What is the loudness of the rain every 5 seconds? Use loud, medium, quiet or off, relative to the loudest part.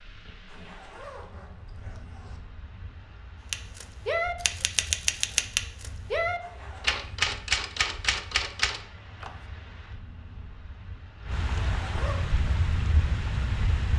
quiet, quiet, loud.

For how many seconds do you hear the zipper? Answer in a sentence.
The zipper can be heard for 3 seconds in total.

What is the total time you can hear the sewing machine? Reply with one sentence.
You can't hear the sewing machine here.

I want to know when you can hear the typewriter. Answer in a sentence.
You can hear the typewriter from 3.5 to 9.3 s.